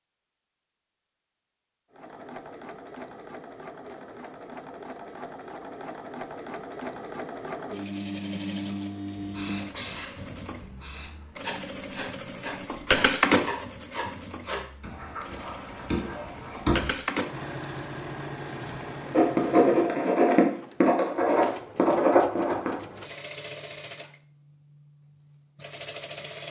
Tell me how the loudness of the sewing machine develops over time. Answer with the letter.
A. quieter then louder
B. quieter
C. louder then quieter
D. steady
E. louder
C.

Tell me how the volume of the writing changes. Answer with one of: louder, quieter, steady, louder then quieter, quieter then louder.
louder.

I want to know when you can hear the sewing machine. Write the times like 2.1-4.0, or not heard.
1.9-26.4.